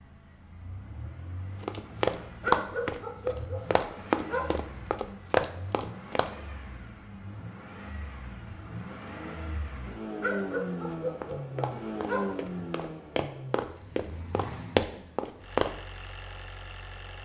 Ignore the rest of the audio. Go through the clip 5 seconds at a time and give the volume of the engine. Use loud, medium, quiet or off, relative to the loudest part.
medium, medium, loud, medium.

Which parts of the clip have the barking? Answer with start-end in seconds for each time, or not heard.
2.4-4.7, 10.2-12.7.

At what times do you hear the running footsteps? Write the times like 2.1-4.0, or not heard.
1.6-6.3, 10.8-15.8.